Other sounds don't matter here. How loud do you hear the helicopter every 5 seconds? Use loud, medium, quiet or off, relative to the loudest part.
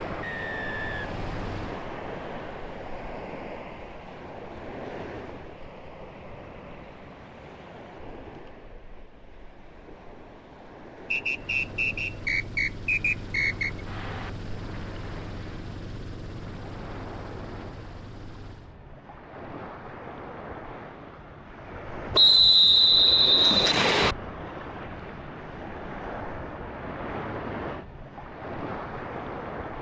loud, off, loud, loud, off, off.